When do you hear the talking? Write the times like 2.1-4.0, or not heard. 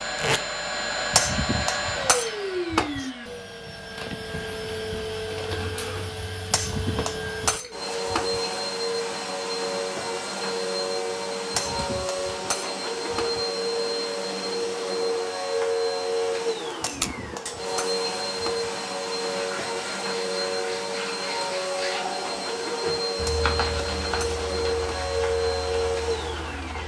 not heard.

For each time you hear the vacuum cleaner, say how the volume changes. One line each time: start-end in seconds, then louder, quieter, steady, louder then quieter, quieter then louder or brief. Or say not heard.
0.0-26.8 steady.